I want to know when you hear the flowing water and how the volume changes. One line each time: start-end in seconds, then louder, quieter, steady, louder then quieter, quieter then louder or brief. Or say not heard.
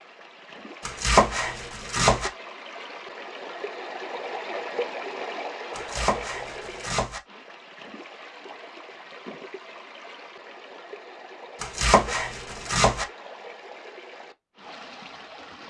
0.0-15.6 louder then quieter.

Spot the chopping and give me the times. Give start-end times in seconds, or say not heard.
0.8-2.3, 5.8-7.2, 11.6-13.1.